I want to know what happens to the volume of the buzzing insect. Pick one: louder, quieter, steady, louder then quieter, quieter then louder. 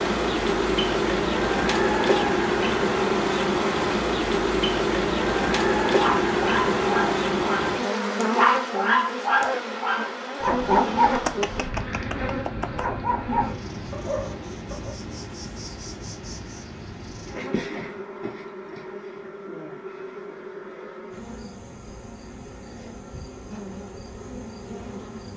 quieter.